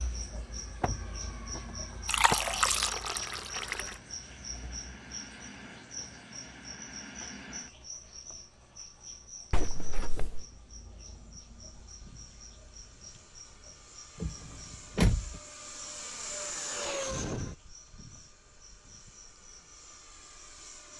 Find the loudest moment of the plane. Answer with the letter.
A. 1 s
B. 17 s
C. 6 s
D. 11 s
B.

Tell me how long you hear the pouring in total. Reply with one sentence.
The pouring can be heard for 2 seconds in total.